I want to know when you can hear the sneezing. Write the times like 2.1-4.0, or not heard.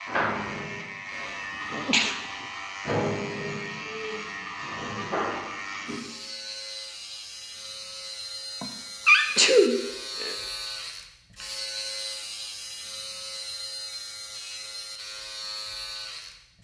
1.7-2.1, 8.6-10.3.